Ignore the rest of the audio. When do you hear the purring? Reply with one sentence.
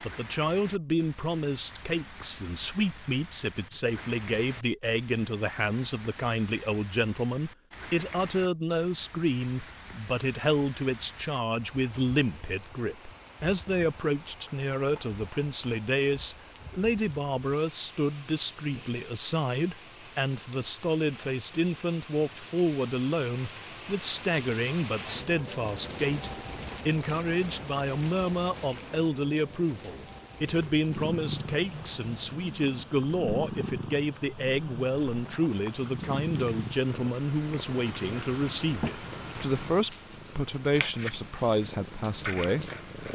You can hear the purring from 30.4 to 43.1 s.